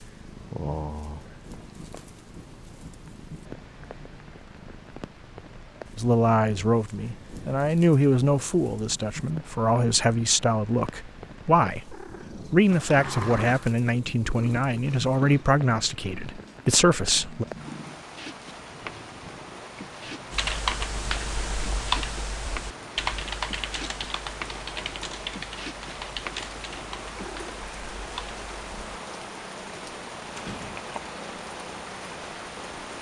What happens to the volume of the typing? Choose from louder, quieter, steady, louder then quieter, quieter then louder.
quieter.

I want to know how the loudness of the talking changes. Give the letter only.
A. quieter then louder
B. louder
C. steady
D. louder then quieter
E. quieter
C.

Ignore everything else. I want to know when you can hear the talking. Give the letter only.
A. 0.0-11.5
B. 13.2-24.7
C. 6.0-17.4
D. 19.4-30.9
C.